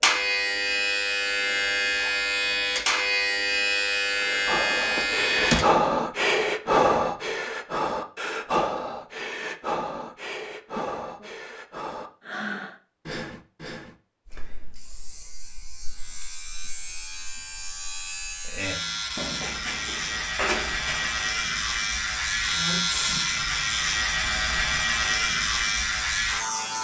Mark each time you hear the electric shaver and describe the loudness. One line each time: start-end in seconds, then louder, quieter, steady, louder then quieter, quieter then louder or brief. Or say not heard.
0.0-5.7 steady
14.2-26.7 louder.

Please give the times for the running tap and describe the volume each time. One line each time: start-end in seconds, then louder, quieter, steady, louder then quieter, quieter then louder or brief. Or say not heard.
not heard.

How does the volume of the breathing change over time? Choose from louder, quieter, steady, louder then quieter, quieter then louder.
quieter.